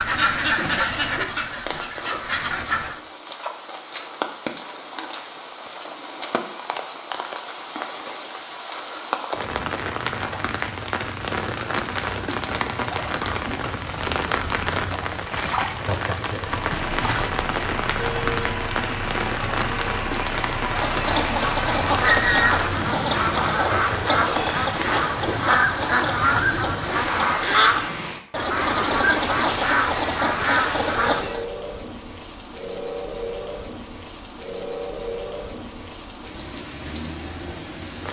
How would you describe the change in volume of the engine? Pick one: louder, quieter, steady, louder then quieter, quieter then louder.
steady.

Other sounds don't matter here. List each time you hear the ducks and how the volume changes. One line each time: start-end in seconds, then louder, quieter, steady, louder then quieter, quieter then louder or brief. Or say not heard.
0.0-3.0 brief
20.7-31.4 steady.